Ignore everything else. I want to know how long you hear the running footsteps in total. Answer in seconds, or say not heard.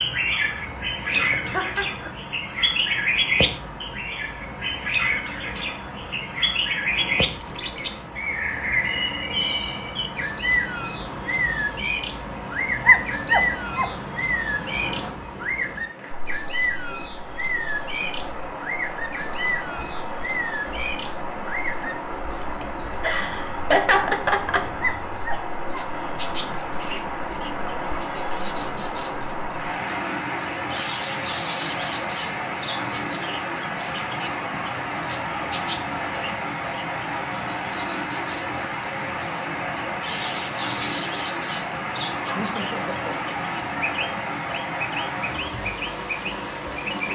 not heard.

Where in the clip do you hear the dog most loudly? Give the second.
13 s.